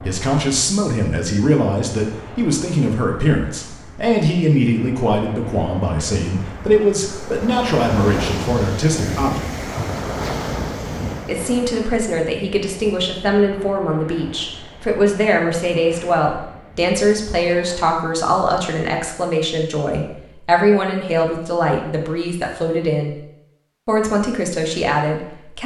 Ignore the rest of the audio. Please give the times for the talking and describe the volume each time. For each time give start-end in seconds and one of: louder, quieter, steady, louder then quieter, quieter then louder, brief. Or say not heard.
0.0-9.5 steady
11.2-23.1 steady
23.9-25.6 brief.